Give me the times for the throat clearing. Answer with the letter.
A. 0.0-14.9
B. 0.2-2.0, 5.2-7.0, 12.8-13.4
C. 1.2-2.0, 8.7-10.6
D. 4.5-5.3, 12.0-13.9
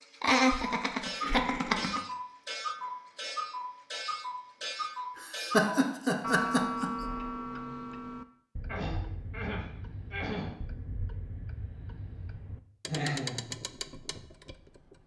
C.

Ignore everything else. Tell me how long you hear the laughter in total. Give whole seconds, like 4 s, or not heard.
4 s.